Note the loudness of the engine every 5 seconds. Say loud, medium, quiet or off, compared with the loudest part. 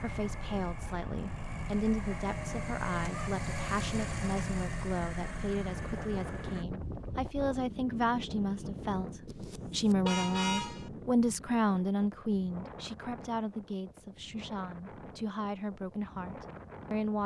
loud, loud, off, off.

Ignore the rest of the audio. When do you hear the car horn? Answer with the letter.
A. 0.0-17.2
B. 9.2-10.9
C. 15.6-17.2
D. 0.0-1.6
B.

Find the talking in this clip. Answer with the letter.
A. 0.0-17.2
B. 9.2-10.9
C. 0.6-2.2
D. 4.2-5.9
A.